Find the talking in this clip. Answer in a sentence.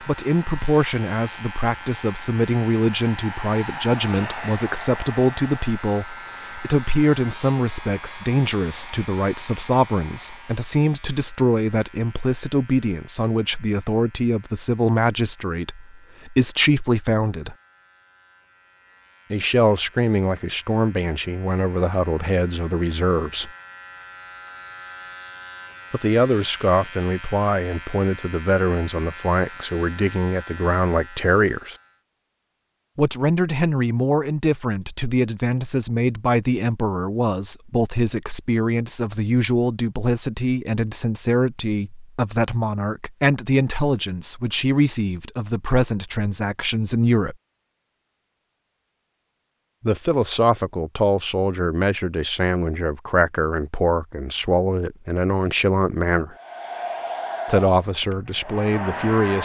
You can hear the talking from 0.1 to 17.6 s, from 19.3 to 23.5 s, from 25.9 to 31.8 s, from 33.0 to 47.4 s, from 49.8 to 56.4 s and from 57.5 to 59.4 s.